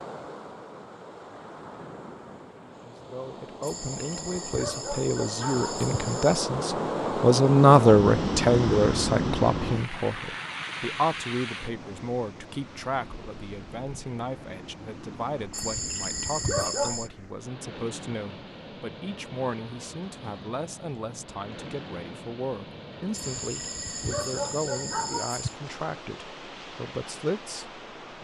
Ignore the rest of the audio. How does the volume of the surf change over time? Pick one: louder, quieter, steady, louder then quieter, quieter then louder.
louder then quieter.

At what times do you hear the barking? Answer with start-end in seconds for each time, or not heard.
3.6-6.4, 15.5-17.1, 23.1-25.6.